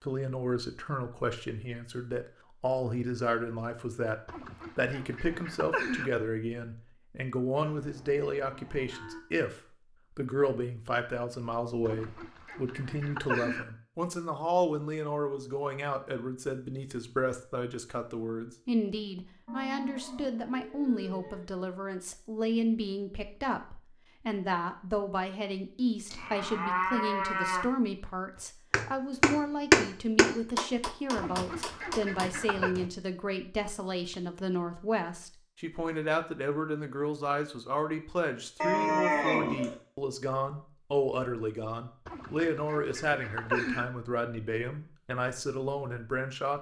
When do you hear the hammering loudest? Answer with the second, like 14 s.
30 s.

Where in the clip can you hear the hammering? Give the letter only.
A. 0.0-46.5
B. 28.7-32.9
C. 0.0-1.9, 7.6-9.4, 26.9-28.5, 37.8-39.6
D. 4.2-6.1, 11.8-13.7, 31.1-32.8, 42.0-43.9
B.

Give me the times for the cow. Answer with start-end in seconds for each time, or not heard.
7.5-9.2, 19.4-21.4, 26.1-27.6, 38.6-39.8.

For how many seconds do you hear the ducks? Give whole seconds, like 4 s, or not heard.
7 s.